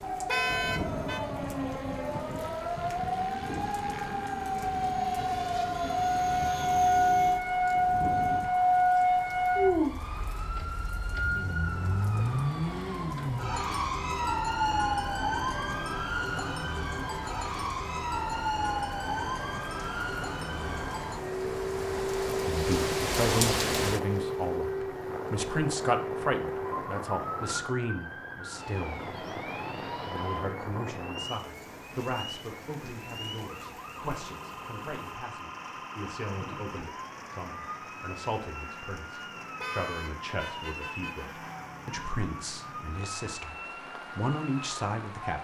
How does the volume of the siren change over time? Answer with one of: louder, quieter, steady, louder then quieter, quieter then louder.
quieter.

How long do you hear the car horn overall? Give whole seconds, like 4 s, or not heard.
3 s.